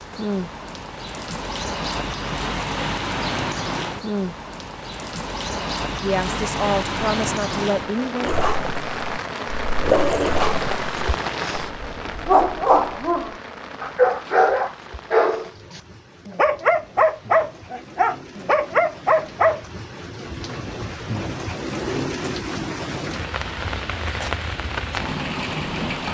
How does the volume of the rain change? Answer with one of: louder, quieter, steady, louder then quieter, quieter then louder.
quieter then louder.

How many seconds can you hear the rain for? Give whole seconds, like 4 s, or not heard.
26 s.